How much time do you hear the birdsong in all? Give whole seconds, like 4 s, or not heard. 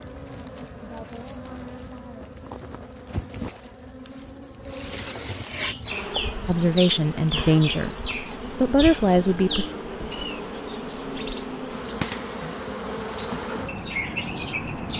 9 s.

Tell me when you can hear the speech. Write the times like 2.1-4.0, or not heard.
6.5-9.7.